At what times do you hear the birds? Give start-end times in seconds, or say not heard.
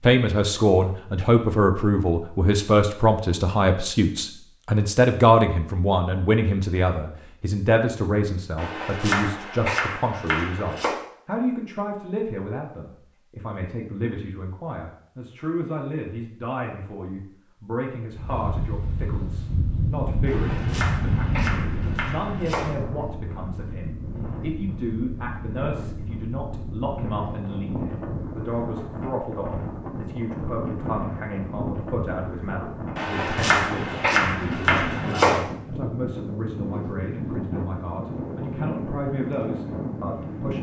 not heard.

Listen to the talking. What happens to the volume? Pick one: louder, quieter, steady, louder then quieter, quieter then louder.
quieter.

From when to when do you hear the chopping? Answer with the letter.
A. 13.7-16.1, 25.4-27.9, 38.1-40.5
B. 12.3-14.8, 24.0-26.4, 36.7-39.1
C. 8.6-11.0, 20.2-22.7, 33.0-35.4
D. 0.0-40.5
C.